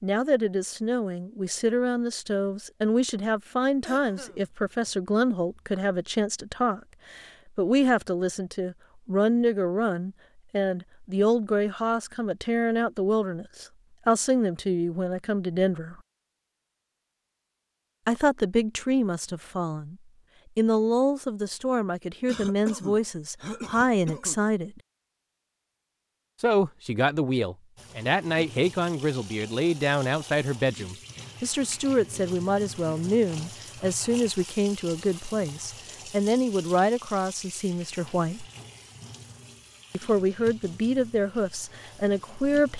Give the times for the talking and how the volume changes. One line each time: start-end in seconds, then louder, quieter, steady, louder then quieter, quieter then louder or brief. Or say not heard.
0.0-15.9 steady
18.1-19.9 brief
20.6-24.8 quieter then louder
26.4-38.5 steady
39.9-42.7 brief.